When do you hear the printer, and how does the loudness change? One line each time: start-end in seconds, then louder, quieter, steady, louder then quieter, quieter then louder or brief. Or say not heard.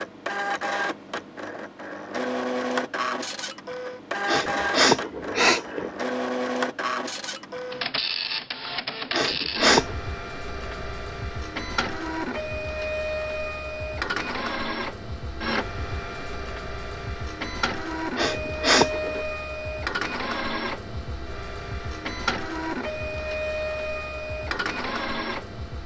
0.0-25.8 steady.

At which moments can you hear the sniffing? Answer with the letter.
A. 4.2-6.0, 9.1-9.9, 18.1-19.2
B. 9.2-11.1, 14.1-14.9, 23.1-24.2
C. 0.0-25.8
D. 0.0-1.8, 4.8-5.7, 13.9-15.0
A.